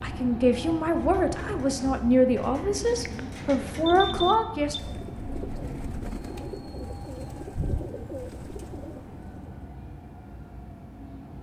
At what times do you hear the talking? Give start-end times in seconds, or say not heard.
0.0-4.8.